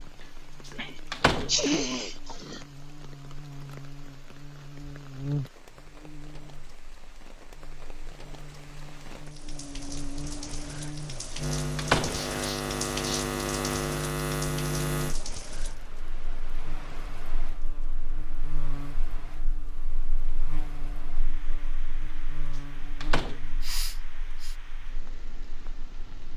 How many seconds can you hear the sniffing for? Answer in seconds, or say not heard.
4 s.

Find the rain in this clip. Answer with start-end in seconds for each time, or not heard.
0.0-26.3.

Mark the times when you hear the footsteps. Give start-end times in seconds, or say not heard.
not heard.